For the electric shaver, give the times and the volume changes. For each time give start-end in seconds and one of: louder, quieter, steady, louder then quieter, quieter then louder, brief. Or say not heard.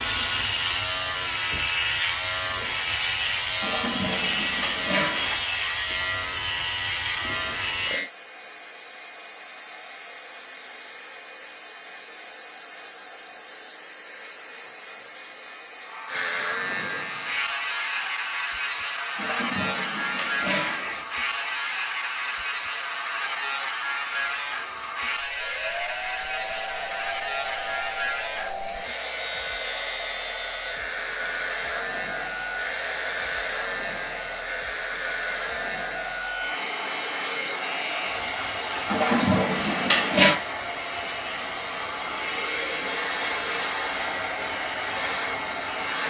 0.0-8.1 steady
16.1-46.0 quieter.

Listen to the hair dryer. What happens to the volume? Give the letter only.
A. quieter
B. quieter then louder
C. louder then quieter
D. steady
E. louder
E.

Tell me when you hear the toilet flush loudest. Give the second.
40 s.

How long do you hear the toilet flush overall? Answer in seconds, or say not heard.
5 s.